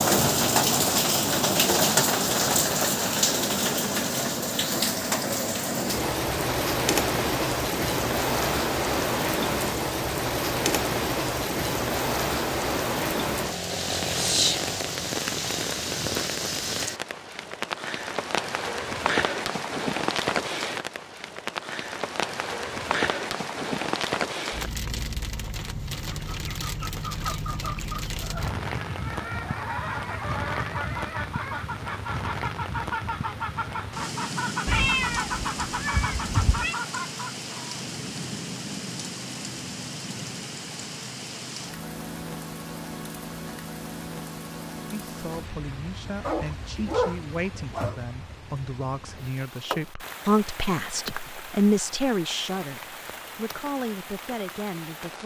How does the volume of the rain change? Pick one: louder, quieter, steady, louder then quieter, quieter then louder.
quieter.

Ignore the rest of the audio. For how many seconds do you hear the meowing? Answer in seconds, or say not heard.
2 s.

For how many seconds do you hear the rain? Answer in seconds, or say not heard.
55 s.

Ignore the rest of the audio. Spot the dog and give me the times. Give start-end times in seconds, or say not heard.
46.2-48.0.